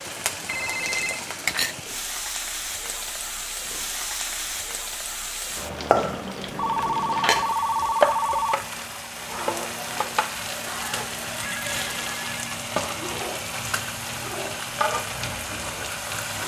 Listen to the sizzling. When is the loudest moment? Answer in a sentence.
The volume of the sizzling peaks at 8 seconds.